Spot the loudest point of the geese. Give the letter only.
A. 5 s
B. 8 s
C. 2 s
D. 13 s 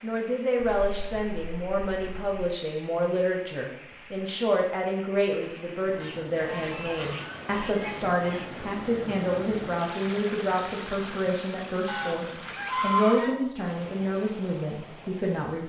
D.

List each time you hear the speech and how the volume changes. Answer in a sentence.
The speech can be heard from 0.0 to 15.6 s, at a steady volume.